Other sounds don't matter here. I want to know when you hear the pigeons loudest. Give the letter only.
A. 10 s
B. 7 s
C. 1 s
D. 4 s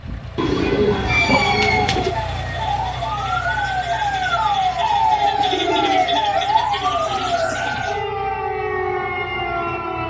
C.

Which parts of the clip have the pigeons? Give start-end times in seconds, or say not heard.
0.3-2.1, 5.1-7.8.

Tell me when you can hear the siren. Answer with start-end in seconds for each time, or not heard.
0.0-10.0.